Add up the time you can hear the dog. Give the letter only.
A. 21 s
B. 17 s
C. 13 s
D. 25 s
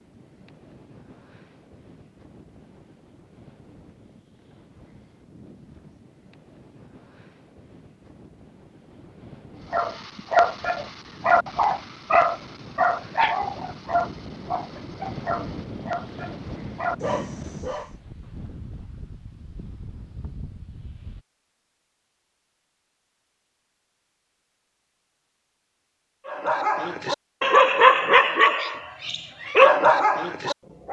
C.